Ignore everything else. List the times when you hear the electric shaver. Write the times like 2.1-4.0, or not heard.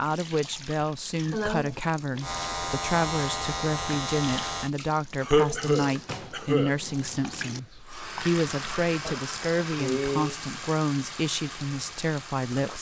2.2-4.7.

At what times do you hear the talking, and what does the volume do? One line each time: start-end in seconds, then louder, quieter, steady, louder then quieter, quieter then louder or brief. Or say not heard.
0.0-12.7 steady.